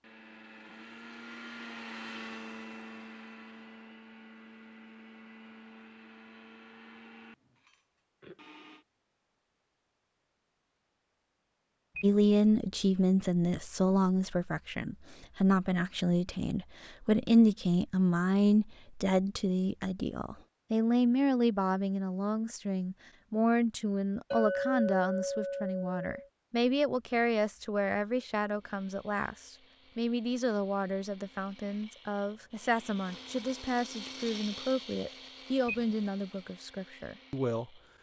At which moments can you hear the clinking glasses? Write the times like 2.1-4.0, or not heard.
24.3-26.3.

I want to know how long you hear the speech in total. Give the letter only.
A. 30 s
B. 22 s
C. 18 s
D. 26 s
D.